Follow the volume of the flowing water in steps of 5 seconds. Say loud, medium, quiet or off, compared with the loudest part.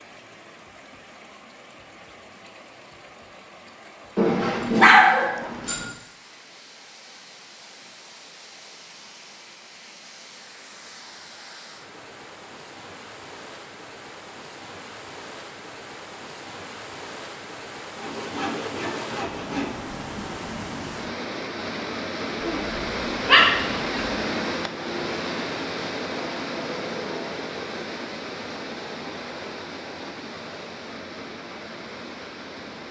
quiet, quiet, quiet, medium, loud, loud, medium.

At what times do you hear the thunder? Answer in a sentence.
You can't hear the thunder here.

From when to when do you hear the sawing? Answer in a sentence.
The sawing can be heard from 17.9 to 19.8 s.